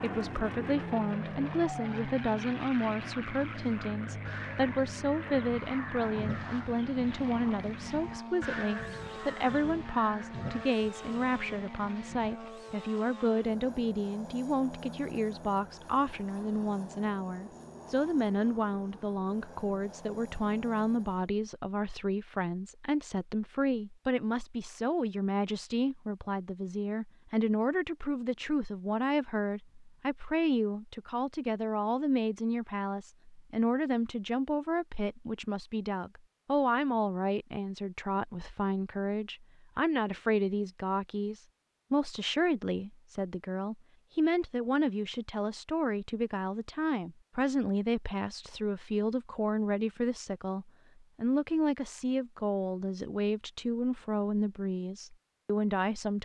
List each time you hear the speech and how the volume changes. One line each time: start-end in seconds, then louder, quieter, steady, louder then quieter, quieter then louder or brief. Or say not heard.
0.0-56.2 steady.